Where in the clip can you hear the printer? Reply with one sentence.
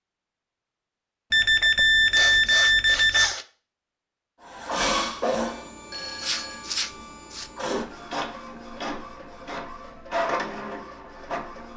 The printer can be heard from 4.4 to 11.7 s.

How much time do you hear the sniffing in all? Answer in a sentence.
The sniffing can be heard for 3 seconds in total.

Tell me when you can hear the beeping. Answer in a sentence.
The beeping can be heard from 1.3 to 3.3 s and from 5.9 to 6.7 s.